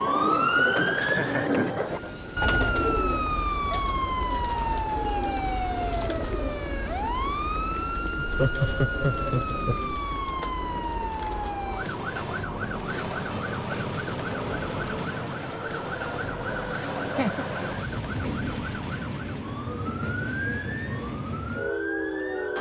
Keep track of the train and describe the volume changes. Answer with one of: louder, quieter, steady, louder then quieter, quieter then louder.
louder.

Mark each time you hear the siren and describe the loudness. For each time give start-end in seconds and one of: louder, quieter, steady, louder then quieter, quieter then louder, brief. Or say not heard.
0.0-22.5 quieter.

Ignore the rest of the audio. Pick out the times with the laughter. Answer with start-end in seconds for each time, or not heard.
0.9-2.3, 8.2-9.8, 17.0-17.4.